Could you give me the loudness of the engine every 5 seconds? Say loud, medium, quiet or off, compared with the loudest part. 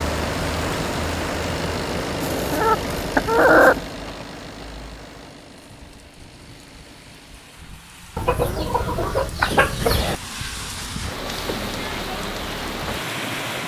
loud, quiet, off.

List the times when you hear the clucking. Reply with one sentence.
The clucking can be heard from 2.2 to 3.9 s and from 8.2 to 10.2 s.